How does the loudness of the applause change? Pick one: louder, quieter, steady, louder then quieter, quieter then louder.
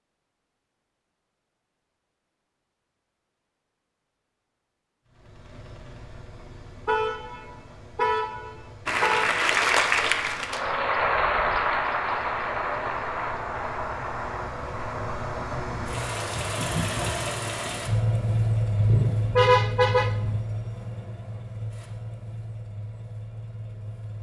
quieter.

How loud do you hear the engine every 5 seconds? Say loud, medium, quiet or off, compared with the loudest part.
off, quiet, quiet, loud, medium.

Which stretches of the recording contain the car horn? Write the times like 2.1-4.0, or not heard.
6.8-9.4, 18.8-20.4.